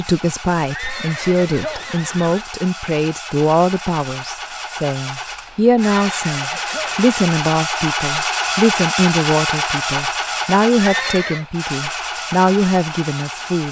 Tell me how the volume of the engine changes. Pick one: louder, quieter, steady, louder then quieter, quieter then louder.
louder then quieter.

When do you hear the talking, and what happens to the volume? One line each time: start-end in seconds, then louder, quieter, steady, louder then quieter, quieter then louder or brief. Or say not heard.
0.0-13.6 steady.